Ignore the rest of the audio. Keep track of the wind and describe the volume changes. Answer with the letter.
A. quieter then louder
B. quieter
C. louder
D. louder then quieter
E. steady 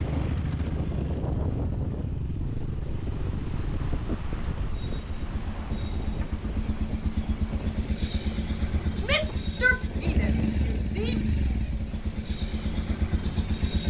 B.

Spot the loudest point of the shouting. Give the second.
10 s.